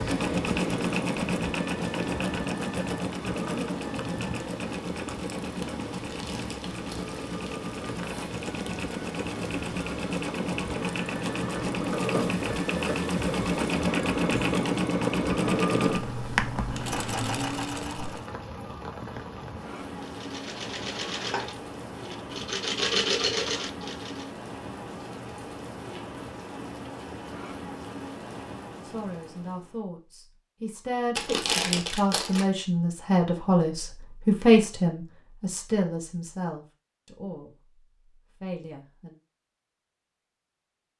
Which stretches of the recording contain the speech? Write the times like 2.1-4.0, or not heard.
28.8-37.5, 38.4-39.1.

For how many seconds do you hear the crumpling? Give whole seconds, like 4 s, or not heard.
3 s.